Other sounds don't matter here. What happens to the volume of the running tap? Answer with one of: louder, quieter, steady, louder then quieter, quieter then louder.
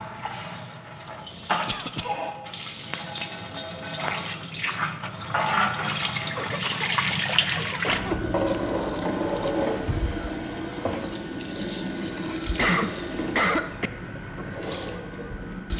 louder then quieter.